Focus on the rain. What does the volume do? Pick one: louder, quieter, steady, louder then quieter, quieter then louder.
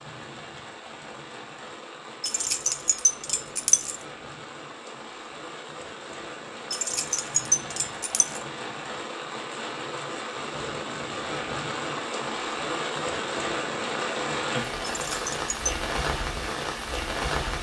louder.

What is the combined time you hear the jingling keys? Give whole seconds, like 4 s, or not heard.
4 s.